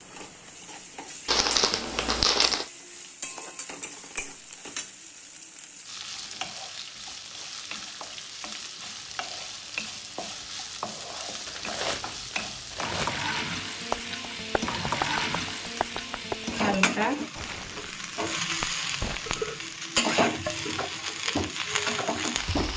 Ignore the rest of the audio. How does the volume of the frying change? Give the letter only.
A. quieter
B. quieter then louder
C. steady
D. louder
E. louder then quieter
D.